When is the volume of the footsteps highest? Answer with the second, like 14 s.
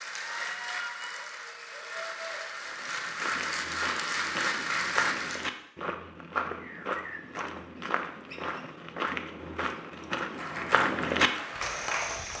11 s.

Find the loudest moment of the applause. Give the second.
5 s.